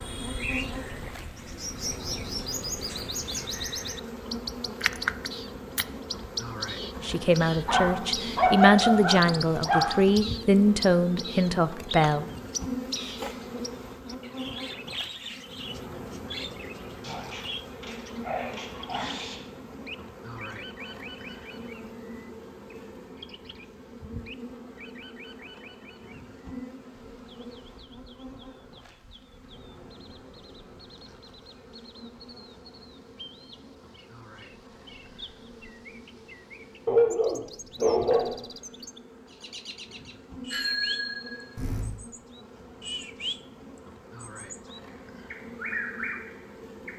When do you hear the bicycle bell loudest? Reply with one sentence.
The loudest moment of the bicycle bell is at 41 seconds.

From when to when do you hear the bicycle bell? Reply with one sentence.
The bicycle bell can be heard from 40.5 to 42.0 s.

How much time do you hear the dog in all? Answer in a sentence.
You can hear the dog for 6 seconds altogether.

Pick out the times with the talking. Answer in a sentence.
The talking can be heard from 7.0 to 12.3 s.